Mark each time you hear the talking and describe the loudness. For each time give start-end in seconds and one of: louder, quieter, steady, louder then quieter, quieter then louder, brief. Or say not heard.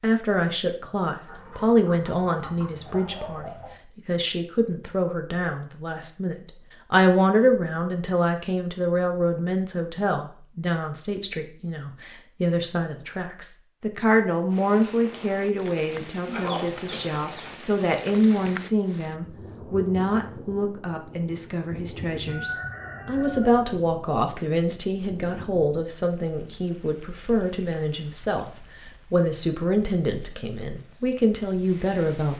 0.0-32.3 steady.